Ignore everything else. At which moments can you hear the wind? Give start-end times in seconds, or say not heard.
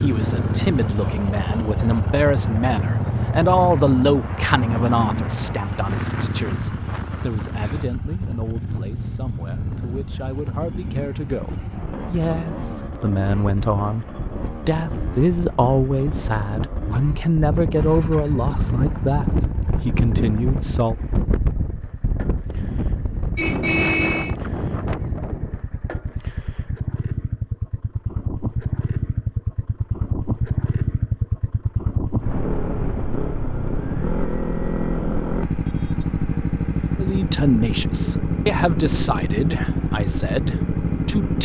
0.0-25.6.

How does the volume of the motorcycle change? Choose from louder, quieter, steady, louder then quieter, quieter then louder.
quieter then louder.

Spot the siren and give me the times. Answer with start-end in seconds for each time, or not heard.
not heard.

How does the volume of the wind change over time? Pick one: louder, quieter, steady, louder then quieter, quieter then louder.
louder.